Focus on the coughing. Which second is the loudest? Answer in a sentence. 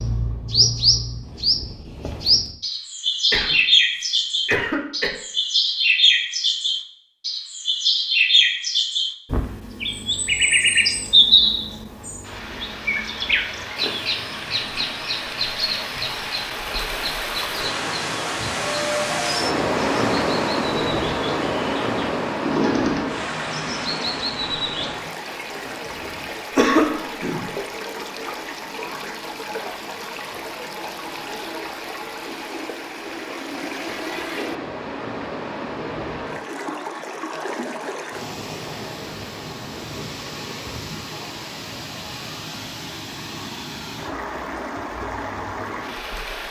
The volume of the coughing peaks at 27 seconds.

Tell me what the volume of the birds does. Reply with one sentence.
The loudness of the birds goes down.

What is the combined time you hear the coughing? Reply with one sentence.
The coughing can be heard for 3 seconds in total.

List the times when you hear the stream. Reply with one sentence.
The stream can be heard from 12.2 to 46.4 s.